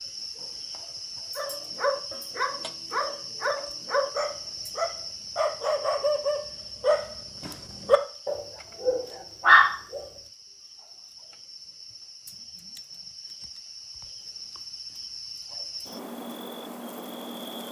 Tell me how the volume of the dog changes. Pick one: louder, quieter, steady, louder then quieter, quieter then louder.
louder.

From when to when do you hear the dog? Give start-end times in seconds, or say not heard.
1.4-10.0.